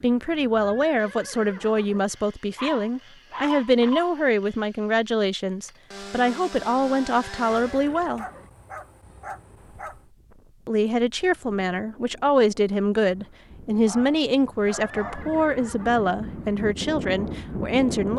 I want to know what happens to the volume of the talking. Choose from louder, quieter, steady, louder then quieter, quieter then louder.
steady.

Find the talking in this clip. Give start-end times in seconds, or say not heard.
0.0-8.2, 10.7-18.1.